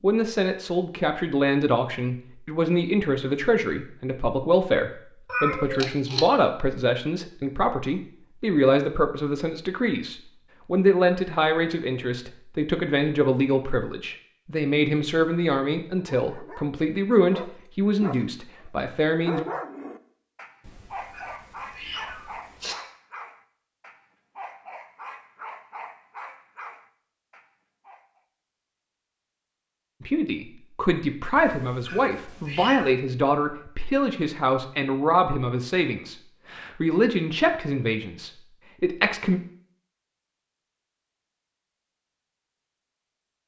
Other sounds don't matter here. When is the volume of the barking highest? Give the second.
19 s.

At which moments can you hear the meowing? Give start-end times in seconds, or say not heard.
5.2-6.2, 20.6-22.8, 31.4-33.0.